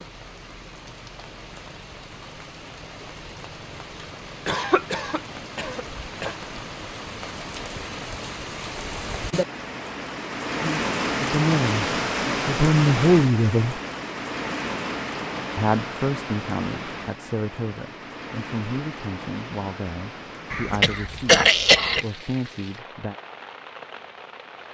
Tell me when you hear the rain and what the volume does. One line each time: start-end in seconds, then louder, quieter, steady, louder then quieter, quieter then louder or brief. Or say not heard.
0.0-24.6 louder then quieter.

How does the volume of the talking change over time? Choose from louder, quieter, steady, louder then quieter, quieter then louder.
quieter.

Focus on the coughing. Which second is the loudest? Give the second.
21 s.